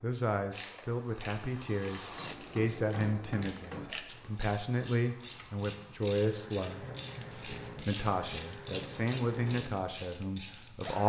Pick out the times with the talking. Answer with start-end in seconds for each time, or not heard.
0.0-11.0.